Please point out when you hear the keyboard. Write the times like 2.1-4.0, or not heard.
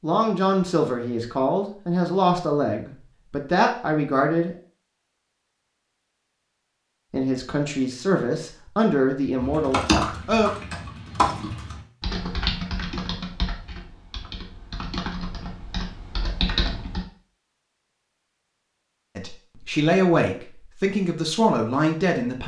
9.3-17.1.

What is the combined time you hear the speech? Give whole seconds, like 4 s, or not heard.
11 s.